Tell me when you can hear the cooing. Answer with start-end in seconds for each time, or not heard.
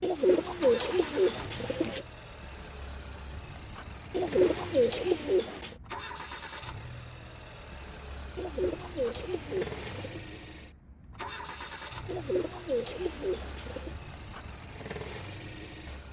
0.0-2.0, 4.1-5.8, 8.3-10.2, 12.1-13.9.